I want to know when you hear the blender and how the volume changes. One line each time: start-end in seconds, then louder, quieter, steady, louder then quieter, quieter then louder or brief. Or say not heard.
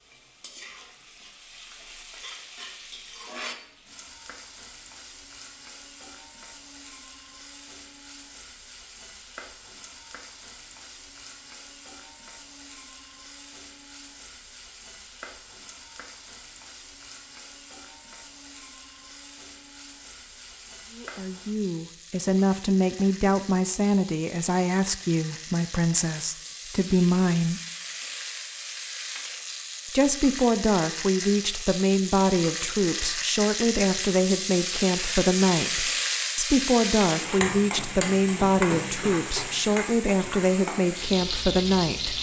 not heard.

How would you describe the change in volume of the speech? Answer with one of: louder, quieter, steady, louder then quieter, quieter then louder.
steady.